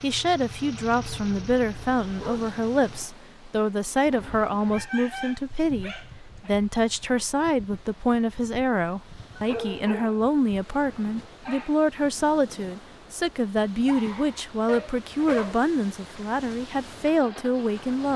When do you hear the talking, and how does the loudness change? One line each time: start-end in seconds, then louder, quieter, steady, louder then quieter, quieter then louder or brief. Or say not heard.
0.0-18.1 steady.